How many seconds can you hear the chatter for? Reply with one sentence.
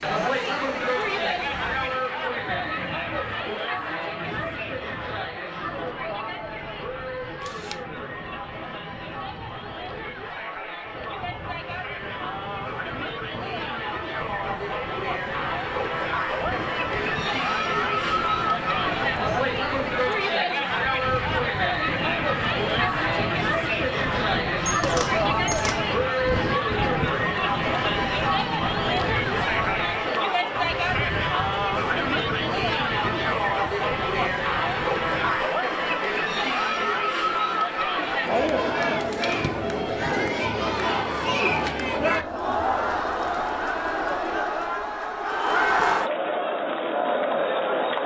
You can hear the chatter for 48 seconds altogether.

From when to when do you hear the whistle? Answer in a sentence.
You can't hear the whistle here.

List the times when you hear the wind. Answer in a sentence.
You can hear the wind from 0.0 to 35.4 s.